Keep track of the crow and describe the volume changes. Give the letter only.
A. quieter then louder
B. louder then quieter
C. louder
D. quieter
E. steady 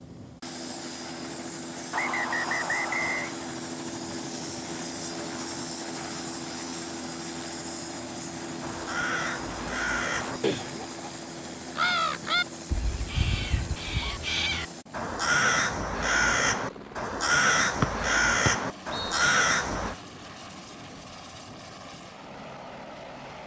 C.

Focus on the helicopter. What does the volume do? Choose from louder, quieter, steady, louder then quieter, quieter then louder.
quieter.